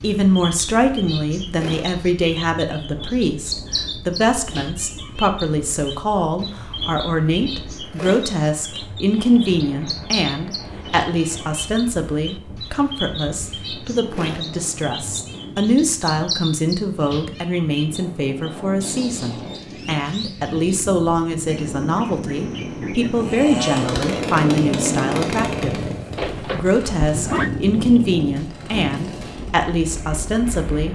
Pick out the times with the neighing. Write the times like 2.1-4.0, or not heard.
26.1-27.5.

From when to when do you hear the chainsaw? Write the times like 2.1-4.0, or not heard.
23.1-29.6.